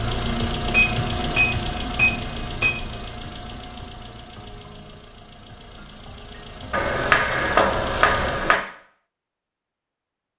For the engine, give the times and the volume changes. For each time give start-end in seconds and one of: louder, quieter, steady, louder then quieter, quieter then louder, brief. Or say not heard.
0.0-8.4 quieter then louder.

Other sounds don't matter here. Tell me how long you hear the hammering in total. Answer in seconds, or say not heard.
4 s.